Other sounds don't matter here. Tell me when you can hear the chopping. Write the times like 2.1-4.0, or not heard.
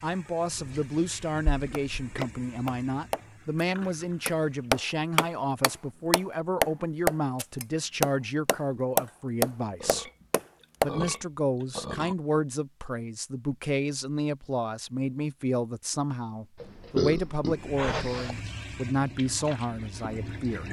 1.7-10.9.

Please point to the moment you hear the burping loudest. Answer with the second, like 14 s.
17 s.